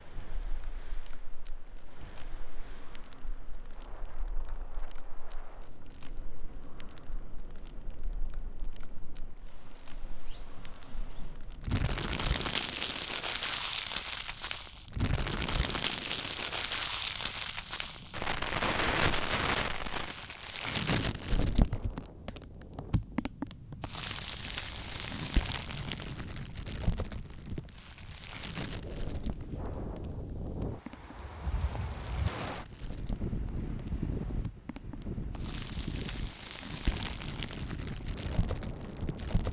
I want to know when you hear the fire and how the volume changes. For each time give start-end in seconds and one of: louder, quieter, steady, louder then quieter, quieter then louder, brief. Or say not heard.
0.0-39.4 louder then quieter.